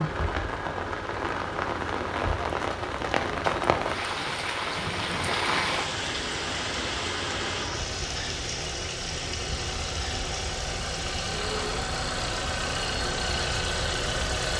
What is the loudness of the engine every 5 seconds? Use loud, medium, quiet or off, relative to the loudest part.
medium, medium, loud.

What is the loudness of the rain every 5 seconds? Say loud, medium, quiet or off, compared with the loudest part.
loud, loud, medium.